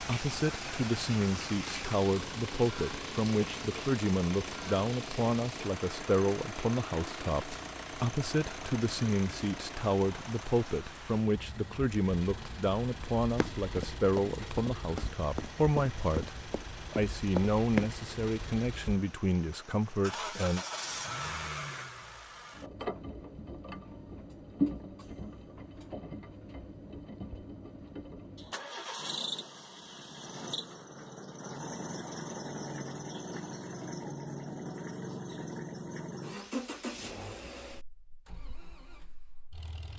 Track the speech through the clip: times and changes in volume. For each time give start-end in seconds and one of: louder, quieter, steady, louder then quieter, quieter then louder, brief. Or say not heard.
0.0-20.6 steady.